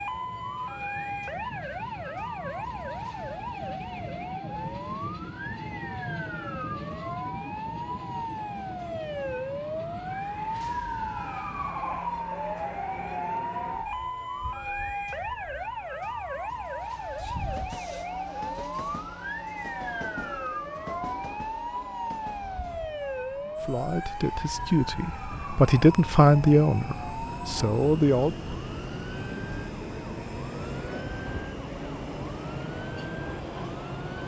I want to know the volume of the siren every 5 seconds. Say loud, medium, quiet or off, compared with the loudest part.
loud, loud, loud, loud, loud, medium, medium.